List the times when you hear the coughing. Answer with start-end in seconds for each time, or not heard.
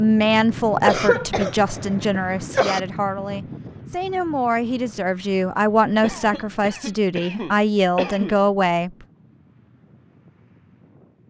0.8-2.8, 6.0-8.3.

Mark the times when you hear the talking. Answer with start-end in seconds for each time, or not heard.
0.0-8.9.